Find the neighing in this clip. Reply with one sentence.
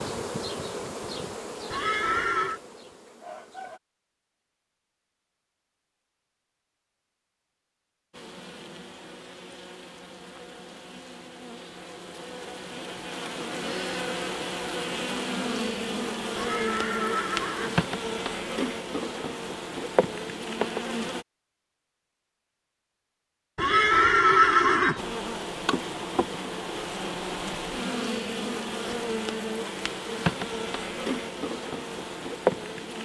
The neighing can be heard from 1.7 to 2.6 s, from 16.4 to 17.8 s and from 23.6 to 25.1 s.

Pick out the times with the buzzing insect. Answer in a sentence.
You can hear the buzzing insect from 0.0 to 3.8 s, from 8.1 to 21.2 s and from 24.9 to 33.0 s.